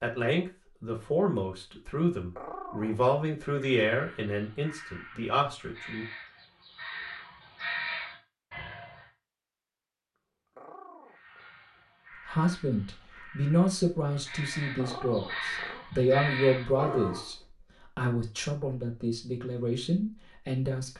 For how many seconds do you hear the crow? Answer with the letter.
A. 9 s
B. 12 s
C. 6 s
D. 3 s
B.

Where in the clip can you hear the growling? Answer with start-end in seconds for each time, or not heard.
2.4-3.0, 10.6-11.5, 14.8-15.8.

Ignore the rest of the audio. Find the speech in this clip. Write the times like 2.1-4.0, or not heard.
0.0-6.0, 12.2-20.9.